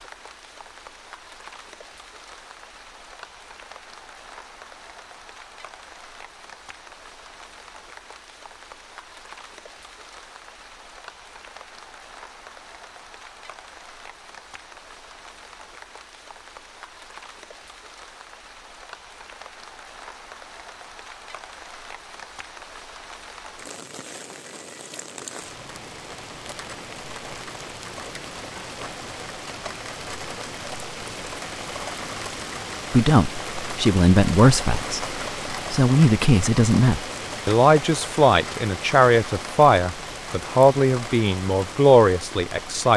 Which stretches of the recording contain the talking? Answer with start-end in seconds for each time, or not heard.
32.9-42.9.